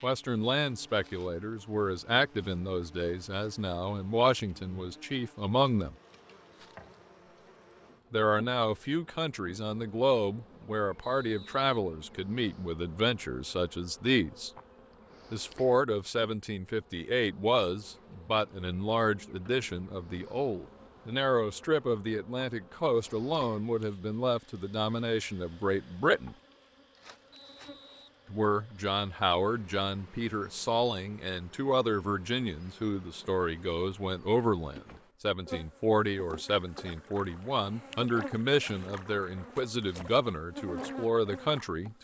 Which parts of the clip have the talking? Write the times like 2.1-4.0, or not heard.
0.0-6.0, 8.1-14.5, 15.3-26.4, 28.3-41.9.